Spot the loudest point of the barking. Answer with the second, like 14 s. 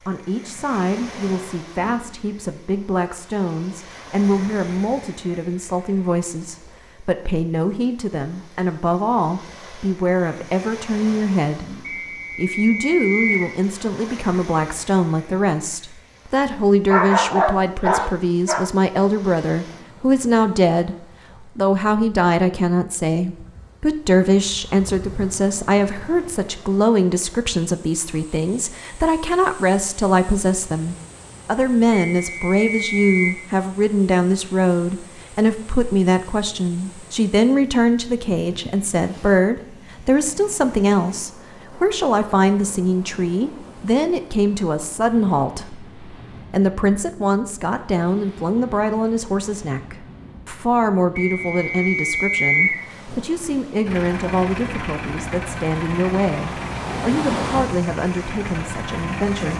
17 s.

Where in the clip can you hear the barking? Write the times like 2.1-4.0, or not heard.
16.9-18.7.